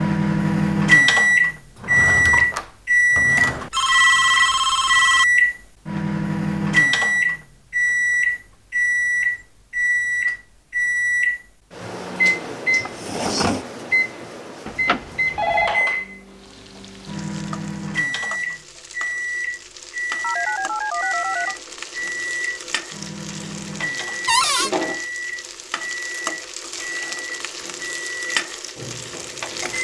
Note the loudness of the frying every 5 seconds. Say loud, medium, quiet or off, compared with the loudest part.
off, off, off, medium, loud, loud.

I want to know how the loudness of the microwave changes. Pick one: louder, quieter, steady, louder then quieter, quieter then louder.
quieter.